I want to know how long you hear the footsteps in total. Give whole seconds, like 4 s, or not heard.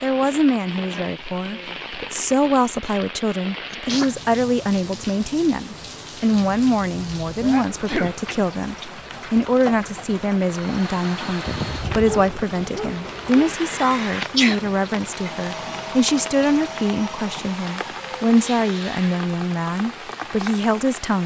not heard.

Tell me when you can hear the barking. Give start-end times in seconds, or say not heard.
11.4-13.6.